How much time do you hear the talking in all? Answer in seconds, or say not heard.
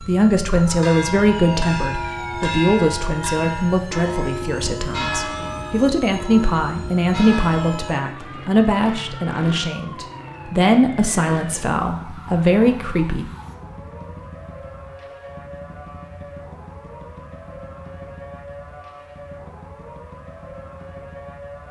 13 s.